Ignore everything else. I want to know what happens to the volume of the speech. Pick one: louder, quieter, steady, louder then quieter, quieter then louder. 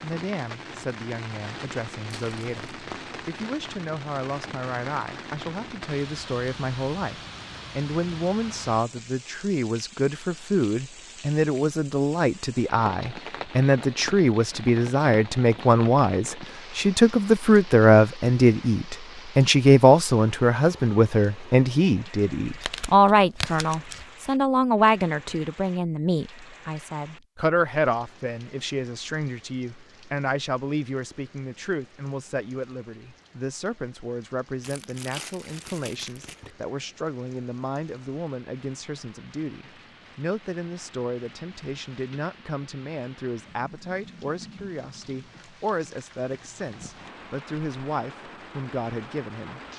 louder then quieter.